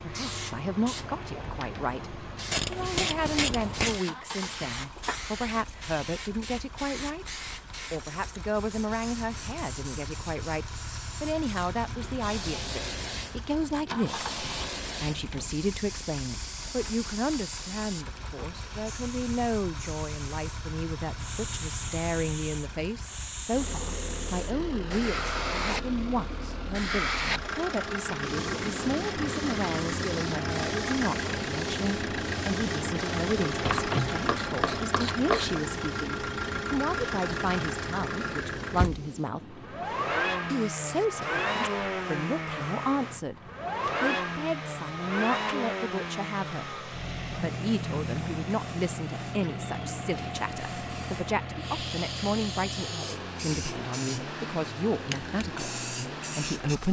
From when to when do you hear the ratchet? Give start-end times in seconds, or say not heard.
2.5-4.0, 33.6-35.6.